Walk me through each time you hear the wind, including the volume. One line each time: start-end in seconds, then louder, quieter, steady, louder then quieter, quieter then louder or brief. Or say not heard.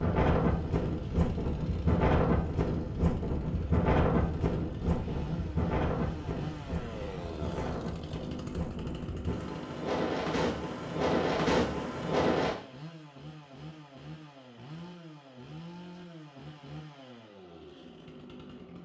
0.0-12.6 quieter then louder.